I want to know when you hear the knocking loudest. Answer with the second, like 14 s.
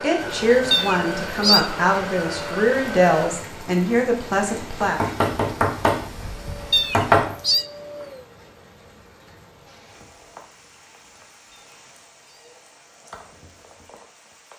7 s.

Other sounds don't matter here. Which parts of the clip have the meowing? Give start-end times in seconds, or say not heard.
0.7-1.7, 6.7-7.7, 11.5-12.6.